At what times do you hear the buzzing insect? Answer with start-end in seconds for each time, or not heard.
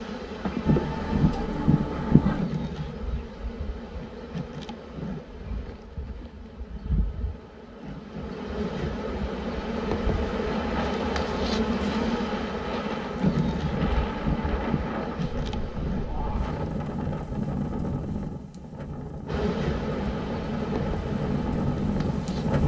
0.0-16.8, 19.2-22.6.